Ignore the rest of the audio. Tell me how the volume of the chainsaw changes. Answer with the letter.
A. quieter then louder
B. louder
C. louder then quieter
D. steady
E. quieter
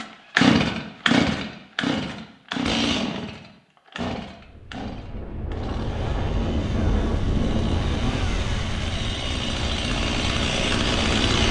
A.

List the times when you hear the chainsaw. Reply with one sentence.
The chainsaw can be heard from 0.0 to 11.4 s.